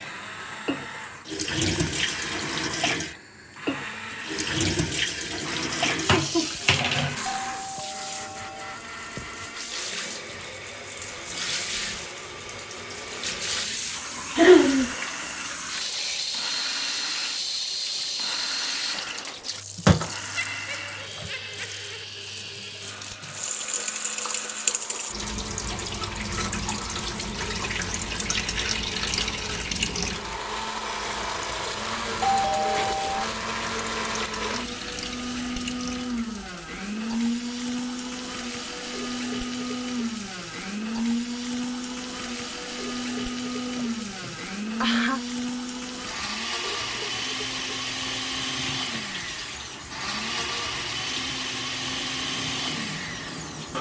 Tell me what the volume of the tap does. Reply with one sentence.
The loudness of the tap goes down.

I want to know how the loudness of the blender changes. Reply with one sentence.
The loudness of the blender goes up.